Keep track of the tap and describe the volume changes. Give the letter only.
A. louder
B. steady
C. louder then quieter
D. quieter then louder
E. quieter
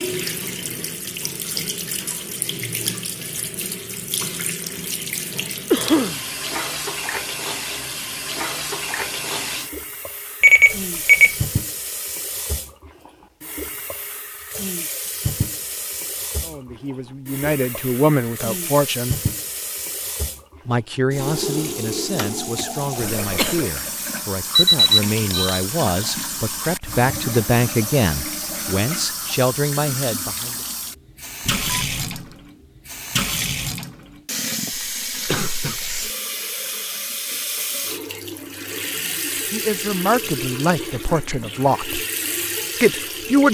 B.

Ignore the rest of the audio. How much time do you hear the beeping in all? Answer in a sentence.
The beeping can be heard for 3 seconds in total.